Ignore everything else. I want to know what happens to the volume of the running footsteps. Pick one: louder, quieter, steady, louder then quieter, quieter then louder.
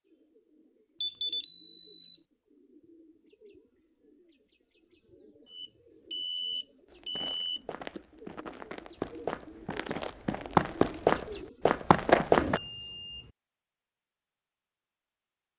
louder.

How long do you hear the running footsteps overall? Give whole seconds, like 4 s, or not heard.
6 s.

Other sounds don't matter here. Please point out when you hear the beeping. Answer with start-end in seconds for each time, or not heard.
1.0-2.2, 5.5-7.7, 12.3-13.3.